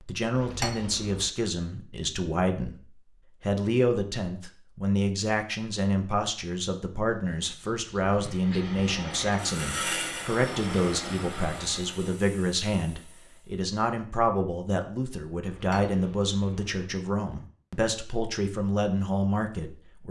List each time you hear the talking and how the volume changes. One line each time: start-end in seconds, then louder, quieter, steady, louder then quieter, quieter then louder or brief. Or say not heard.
0.0-2.8 brief
3.4-20.0 steady.